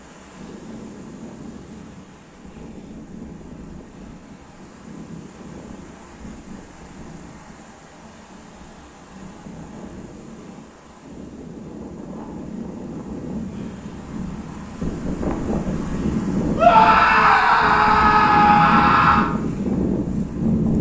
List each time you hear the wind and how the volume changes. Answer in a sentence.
The wind can be heard from 0.0 to 20.7 s, getting louder.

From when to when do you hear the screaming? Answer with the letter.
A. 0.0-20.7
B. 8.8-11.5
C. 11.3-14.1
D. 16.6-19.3
D.